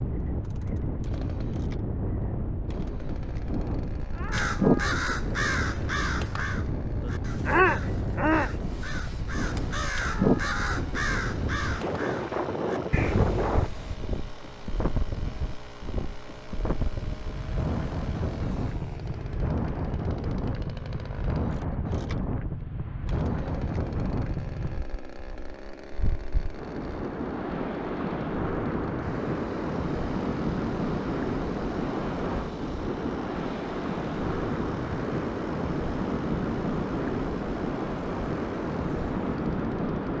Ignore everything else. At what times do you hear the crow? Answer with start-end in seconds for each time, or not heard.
4.3-13.9.